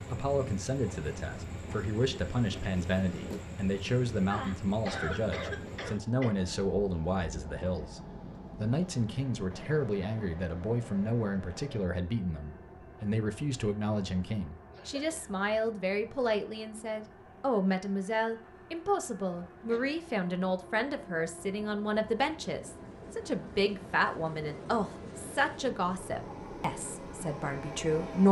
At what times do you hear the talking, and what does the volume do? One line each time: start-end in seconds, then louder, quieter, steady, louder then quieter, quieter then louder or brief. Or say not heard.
0.0-28.2 steady.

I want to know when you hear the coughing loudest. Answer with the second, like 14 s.
5 s.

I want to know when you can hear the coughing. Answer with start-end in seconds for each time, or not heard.
4.3-6.3, 14.7-15.3, 19.4-20.0.